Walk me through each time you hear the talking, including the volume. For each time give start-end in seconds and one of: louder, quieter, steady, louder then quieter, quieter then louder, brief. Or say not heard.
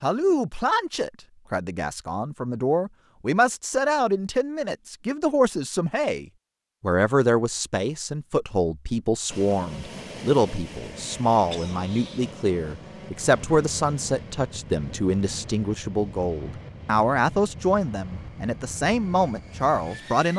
0.0-20.3 steady.